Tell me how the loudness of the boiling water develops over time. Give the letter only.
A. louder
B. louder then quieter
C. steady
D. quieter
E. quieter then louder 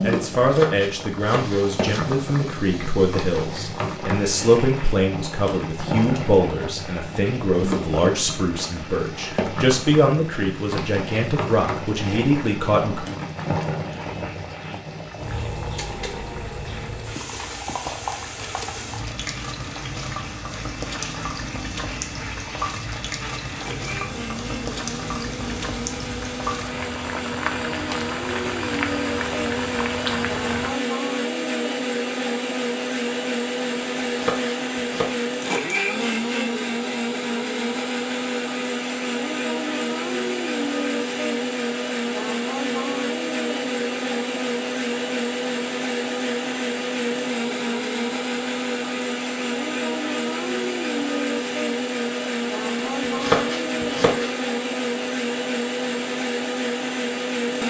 C.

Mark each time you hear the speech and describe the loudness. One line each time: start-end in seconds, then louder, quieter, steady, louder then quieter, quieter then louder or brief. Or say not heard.
0.0-13.1 steady.